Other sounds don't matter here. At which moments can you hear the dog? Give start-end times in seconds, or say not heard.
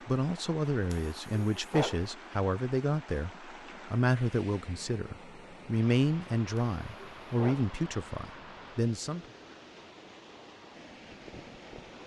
0.9-2.0, 6.5-7.7.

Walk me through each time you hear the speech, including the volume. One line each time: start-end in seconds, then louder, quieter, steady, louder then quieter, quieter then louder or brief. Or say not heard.
0.1-9.2 steady.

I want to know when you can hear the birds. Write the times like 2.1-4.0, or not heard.
not heard.